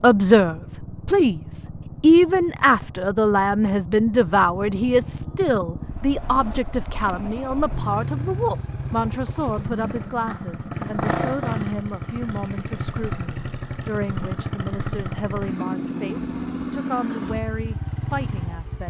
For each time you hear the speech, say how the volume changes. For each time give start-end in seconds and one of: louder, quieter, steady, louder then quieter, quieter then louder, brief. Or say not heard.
0.0-18.8 quieter.